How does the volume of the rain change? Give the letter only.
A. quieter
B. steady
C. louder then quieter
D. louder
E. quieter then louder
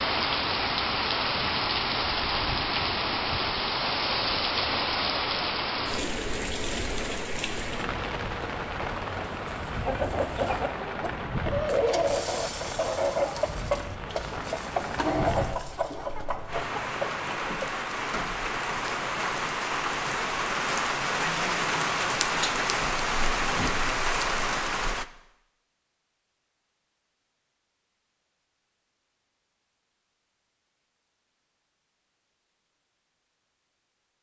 E.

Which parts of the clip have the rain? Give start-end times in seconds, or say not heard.
0.0-25.1.